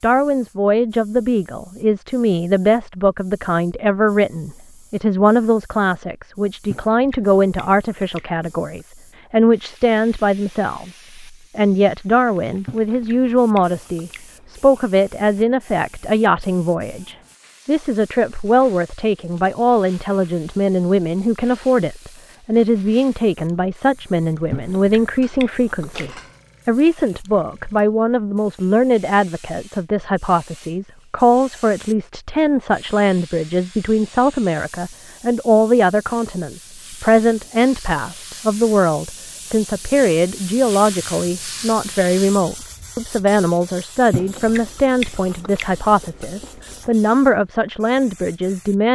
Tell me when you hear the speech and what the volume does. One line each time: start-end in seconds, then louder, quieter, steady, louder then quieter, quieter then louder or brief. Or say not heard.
0.0-48.9 steady.